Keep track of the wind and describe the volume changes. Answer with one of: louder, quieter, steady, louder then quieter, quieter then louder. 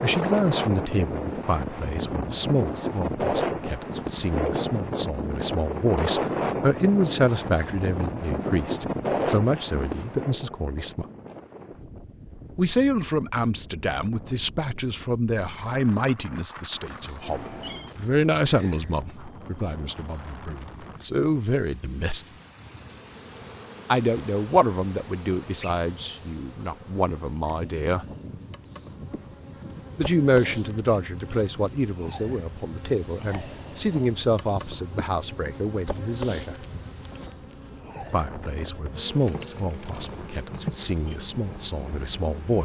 quieter.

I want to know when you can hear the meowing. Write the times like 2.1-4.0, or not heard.
17.2-17.9.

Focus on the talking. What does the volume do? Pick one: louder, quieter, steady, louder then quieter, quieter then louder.
steady.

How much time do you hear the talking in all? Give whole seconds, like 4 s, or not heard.
36 s.